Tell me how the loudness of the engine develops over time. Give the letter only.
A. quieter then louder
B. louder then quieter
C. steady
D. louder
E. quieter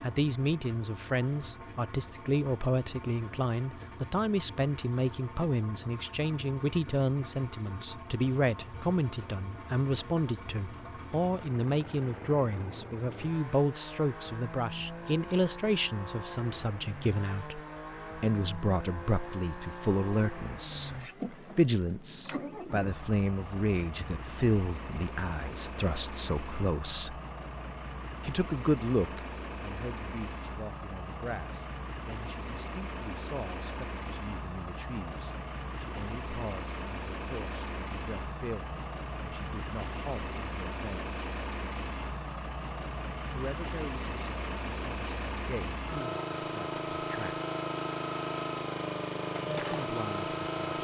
D.